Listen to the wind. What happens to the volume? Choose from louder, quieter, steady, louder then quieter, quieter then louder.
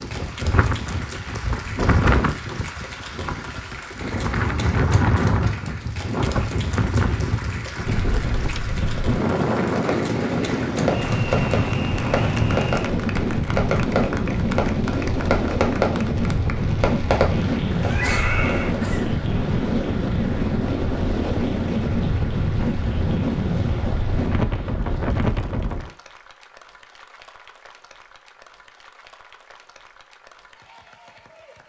steady.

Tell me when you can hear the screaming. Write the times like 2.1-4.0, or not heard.
17.9-18.8.